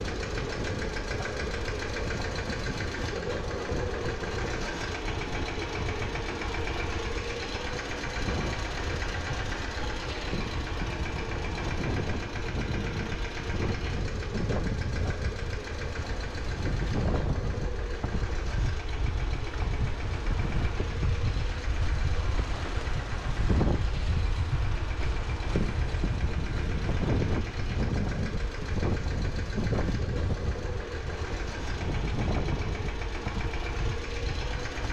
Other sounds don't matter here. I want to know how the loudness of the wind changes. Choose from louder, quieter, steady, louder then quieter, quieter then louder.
louder.